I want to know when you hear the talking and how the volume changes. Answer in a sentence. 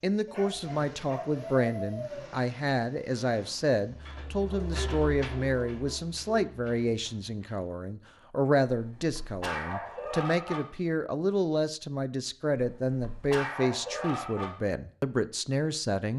The talking can be heard from 0.0 to 16.1 s, at a steady volume.